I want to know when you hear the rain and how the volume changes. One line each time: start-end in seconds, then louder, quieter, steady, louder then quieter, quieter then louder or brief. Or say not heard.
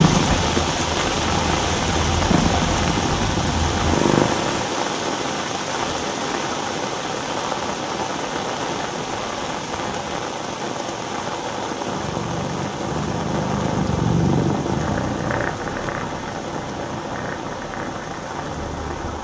0.0-19.1 quieter.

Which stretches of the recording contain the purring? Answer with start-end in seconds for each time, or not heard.
0.0-4.7, 11.8-19.1.